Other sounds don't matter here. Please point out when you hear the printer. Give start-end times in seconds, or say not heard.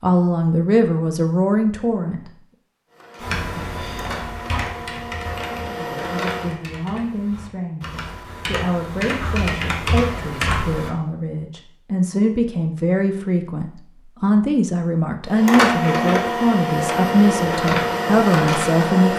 2.9-6.5, 15.2-19.1.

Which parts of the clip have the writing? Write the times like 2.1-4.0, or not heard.
not heard.